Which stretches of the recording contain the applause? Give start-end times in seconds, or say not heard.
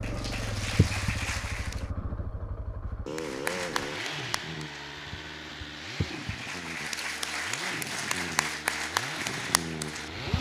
0.0-1.9, 3.1-10.3.